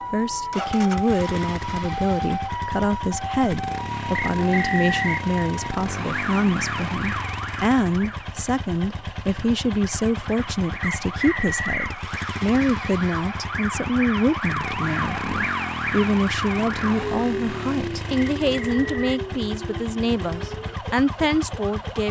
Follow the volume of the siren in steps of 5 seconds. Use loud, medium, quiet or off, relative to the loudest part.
loud, loud, loud, loud, medium.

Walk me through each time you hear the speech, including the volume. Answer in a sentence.
The speech can be heard from 0.1 to 22.0 s, at a steady volume.